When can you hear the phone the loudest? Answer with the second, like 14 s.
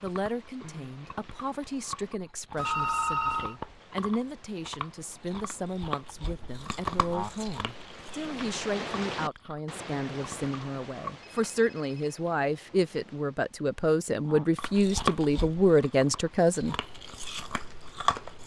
3 s.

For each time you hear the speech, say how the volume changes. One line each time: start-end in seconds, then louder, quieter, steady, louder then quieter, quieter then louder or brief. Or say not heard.
0.0-16.8 louder.